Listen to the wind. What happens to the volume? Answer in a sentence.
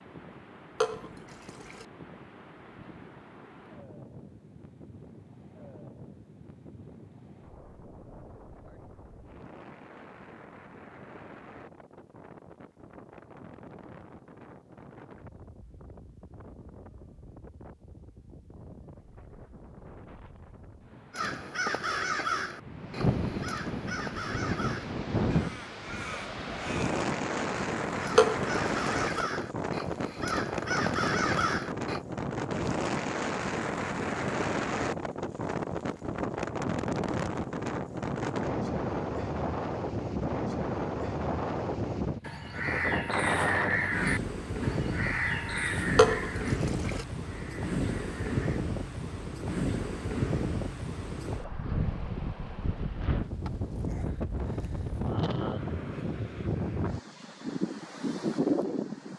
The volume of the wind goes up.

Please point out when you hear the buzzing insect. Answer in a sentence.
You can't hear the buzzing insect here.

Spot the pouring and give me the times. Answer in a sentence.
The pouring can be heard from 0.8 to 1.9 s, from 28.1 to 29.2 s and from 46.0 to 47.0 s.